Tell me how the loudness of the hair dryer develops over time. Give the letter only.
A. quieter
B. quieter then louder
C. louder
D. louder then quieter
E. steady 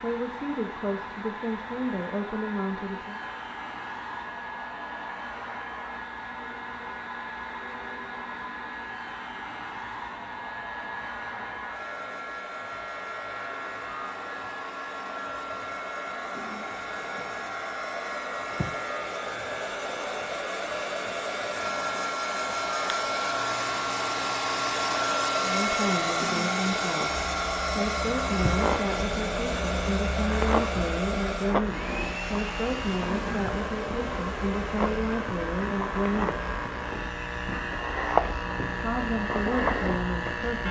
D.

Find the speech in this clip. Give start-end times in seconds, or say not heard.
0.0-3.2, 25.4-36.4, 38.8-40.6.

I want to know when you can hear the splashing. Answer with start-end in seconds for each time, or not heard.
not heard.